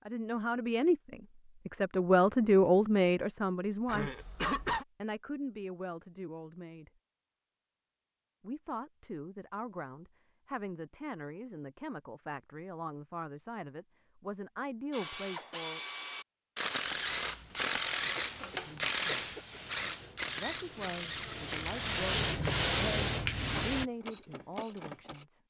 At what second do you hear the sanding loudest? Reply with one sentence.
The volume of the sanding peaks at 23 seconds.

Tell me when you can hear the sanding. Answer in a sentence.
You can hear the sanding from 16.9 to 23.9 s.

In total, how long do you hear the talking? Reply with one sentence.
You can hear the talking for 19 seconds altogether.